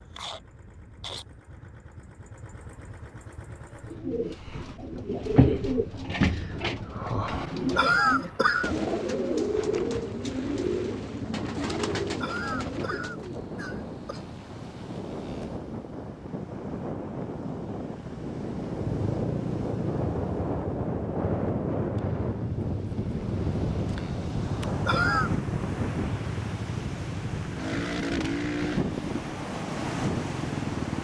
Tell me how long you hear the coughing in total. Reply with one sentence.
The coughing can be heard for 4 seconds in total.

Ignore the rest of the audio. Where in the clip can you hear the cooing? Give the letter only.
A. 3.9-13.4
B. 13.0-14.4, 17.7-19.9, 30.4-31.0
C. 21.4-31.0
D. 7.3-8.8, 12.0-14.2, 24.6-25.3
A.